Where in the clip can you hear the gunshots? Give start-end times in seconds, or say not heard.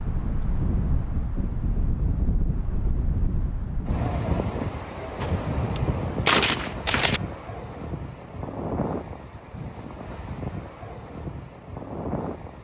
5.2-7.2.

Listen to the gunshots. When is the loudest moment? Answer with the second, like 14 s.
6 s.